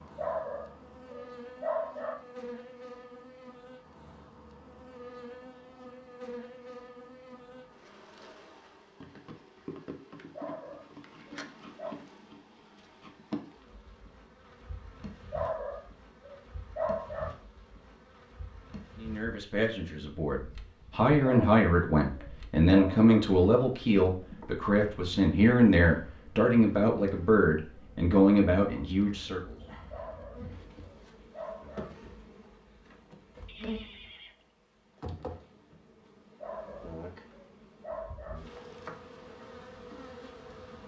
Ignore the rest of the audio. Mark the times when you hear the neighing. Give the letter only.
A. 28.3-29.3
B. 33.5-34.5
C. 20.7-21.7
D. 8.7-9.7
B.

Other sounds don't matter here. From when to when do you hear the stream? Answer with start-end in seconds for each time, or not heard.
not heard.